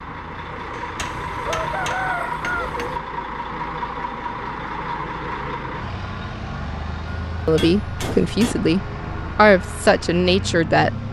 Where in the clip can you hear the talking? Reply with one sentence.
The talking can be heard from 7.5 to 10.9 s.